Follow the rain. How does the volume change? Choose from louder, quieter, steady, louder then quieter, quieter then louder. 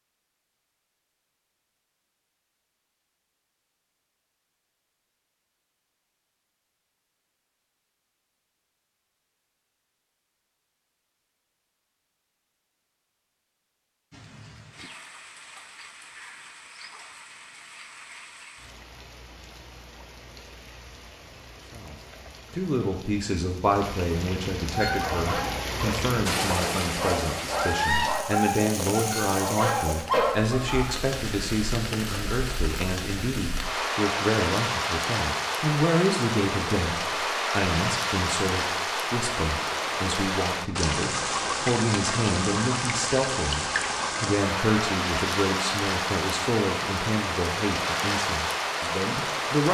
louder.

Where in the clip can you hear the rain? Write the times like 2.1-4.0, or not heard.
14.1-49.6.